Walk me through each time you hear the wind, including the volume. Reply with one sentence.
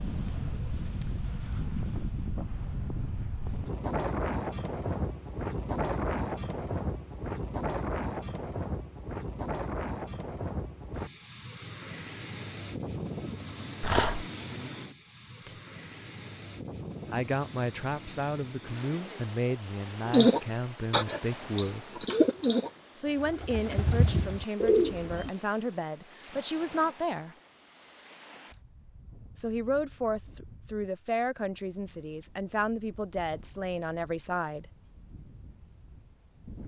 The wind can be heard from 0.0 to 36.6 s, getting quieter.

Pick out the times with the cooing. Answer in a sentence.
The cooing can be heard from 20.1 to 25.3 s.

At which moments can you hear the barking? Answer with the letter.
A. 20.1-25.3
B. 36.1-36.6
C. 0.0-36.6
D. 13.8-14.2
D.